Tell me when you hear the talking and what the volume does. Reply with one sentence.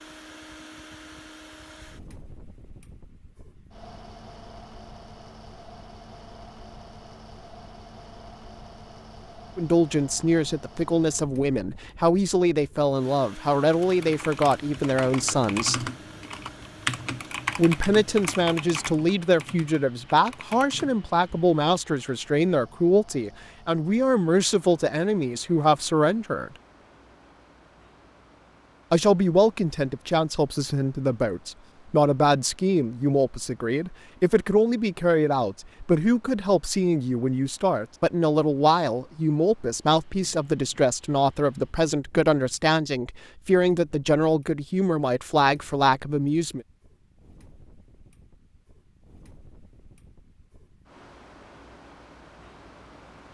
The talking can be heard from 9.6 to 15.8 s, at a steady volume; from 17.6 to 26.5 s, at a steady volume; and from 28.9 to 46.6 s, at a steady volume.